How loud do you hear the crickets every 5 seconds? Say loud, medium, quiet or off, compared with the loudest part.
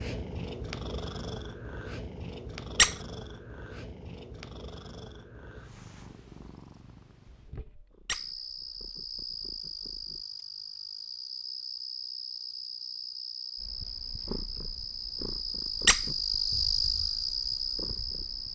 off, medium, medium, loud.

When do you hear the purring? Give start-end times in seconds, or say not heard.
0.0-10.2, 13.6-18.4.